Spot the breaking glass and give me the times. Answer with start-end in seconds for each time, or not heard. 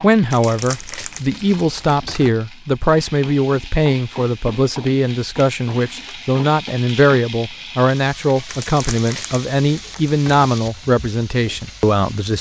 not heard.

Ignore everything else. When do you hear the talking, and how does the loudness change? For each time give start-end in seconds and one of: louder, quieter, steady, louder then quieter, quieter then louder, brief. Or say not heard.
0.0-12.3 steady.